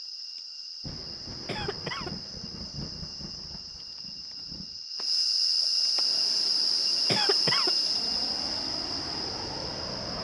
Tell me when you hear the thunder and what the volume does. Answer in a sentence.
You can hear the thunder from 0.8 to 4.8 s, getting quieter.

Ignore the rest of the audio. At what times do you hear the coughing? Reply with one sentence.
You can hear the coughing from 1.4 to 2.1 s and from 7.0 to 7.8 s.